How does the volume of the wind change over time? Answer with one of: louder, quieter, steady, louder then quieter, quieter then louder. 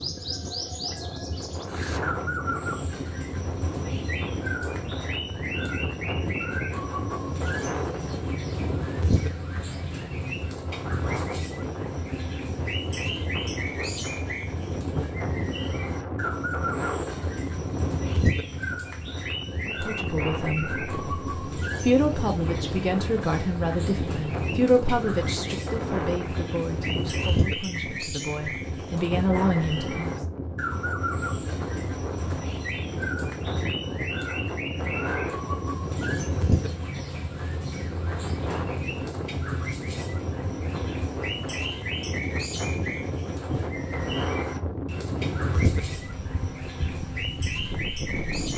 steady.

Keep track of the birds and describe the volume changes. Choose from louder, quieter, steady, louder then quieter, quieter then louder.
steady.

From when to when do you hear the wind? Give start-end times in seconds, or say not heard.
0.0-48.5.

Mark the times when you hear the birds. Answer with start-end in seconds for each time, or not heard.
0.0-48.5.